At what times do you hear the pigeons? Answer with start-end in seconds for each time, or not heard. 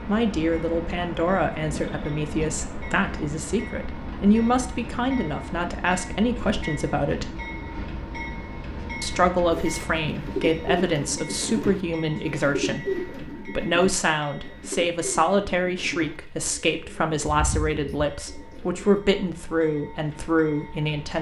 9.6-19.0.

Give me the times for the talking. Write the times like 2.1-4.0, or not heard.
0.0-7.3, 9.0-21.1.